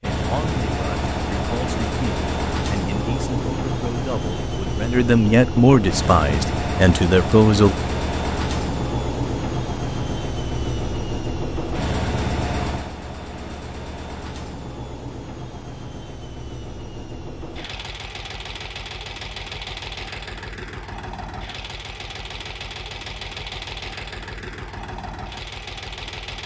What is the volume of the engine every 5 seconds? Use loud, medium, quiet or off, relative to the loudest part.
loud, loud, loud, medium, medium, medium.